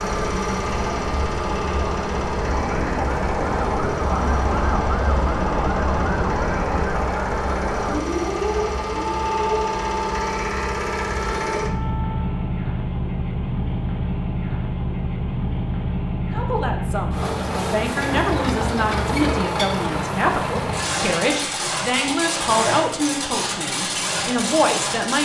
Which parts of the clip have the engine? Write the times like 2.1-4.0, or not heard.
0.0-25.2.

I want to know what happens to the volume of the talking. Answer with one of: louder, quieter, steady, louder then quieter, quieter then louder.
steady.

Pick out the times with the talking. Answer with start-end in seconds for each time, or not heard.
16.3-25.2.